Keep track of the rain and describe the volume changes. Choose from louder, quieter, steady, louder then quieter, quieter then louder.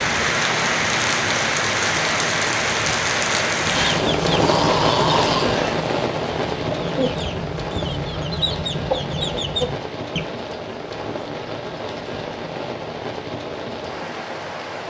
quieter.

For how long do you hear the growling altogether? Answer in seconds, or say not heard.
2 s.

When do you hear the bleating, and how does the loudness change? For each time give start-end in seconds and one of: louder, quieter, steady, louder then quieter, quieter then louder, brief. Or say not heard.
not heard.